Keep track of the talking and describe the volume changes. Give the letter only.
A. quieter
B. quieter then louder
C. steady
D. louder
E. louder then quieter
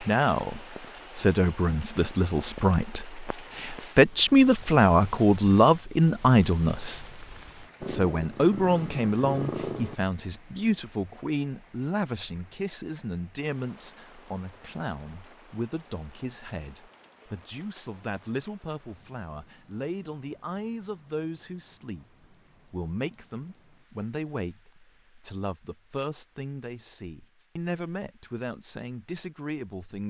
A.